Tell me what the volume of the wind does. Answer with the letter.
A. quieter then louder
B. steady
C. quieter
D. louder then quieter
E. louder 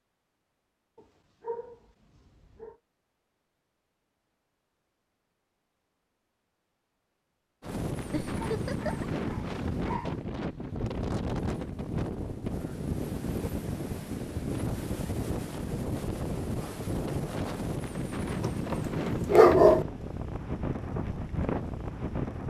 B.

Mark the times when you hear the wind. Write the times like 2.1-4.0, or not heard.
7.6-22.4.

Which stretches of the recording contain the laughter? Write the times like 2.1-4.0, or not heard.
8.1-9.1.